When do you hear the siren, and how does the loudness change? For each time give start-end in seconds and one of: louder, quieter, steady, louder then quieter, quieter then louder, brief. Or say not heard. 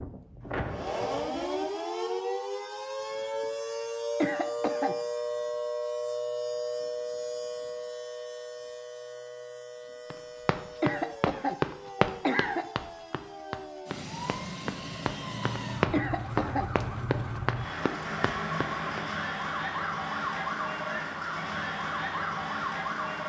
0.0-23.2 quieter then louder.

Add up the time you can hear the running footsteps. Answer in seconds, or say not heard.
9 s.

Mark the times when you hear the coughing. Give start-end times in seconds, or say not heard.
4.2-5.0, 10.8-12.7, 15.9-16.7.